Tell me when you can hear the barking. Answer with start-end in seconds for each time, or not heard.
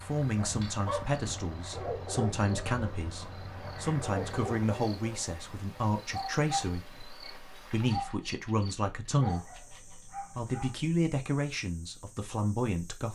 0.3-10.8.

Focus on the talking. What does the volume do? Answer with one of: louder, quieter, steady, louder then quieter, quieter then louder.
steady.